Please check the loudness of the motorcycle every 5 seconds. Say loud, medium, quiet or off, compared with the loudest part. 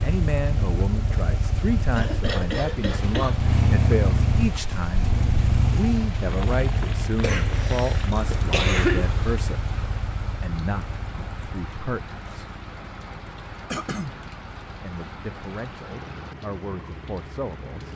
loud, loud, quiet, quiet.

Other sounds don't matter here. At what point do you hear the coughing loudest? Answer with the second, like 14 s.
9 s.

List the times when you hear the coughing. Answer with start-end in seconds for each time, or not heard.
1.9-3.5, 7.2-9.1, 13.7-14.2.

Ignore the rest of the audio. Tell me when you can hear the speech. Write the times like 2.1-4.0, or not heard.
0.0-5.2, 5.8-12.6, 14.8-17.9.